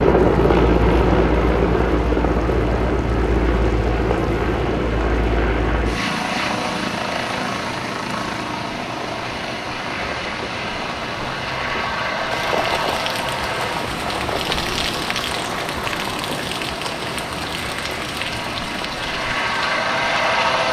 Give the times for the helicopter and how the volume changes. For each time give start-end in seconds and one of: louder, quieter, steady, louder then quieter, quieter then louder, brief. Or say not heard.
0.0-20.6 quieter.